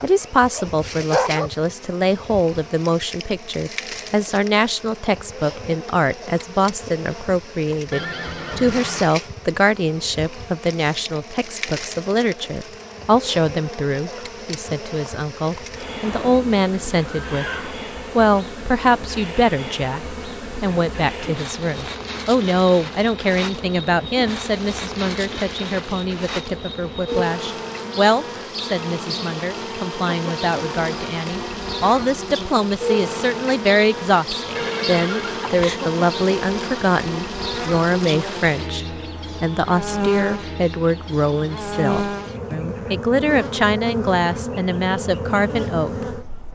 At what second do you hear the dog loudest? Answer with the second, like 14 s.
1 s.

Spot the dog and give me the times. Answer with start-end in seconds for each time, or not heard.
0.0-1.5.